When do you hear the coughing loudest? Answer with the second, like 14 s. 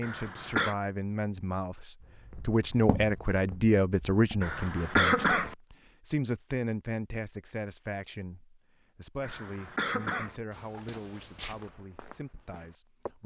5 s.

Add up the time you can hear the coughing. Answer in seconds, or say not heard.
3 s.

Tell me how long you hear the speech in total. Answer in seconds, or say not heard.
13 s.